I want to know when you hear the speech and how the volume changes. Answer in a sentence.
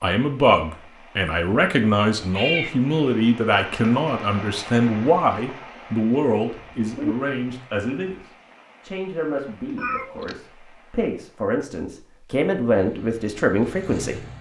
The speech can be heard from 0.0 to 14.2 s, getting quieter then louder.